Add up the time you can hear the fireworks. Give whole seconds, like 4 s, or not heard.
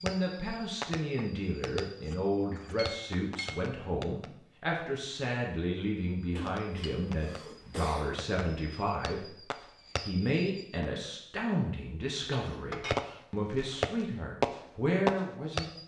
12 s.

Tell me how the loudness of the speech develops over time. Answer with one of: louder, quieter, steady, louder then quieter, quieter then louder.
steady.